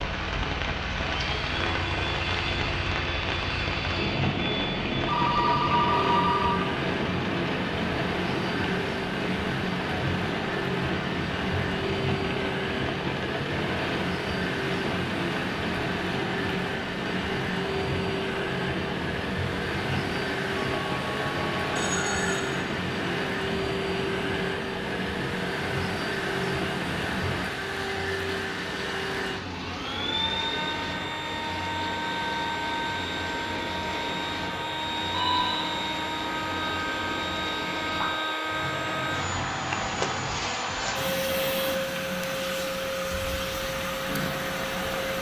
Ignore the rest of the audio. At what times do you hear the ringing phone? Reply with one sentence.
The ringing phone can be heard from 5.0 to 6.6 s, from 20.6 to 22.4 s and from 35.1 to 35.8 s.